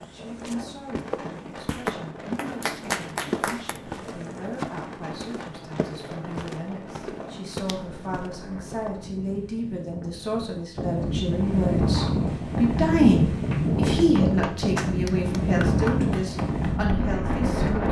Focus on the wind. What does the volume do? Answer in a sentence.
The loudness of the wind goes up.